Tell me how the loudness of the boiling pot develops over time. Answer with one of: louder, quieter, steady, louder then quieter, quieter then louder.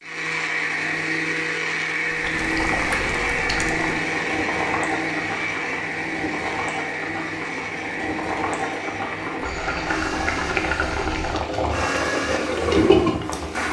louder.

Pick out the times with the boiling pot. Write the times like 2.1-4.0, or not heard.
2.1-13.6.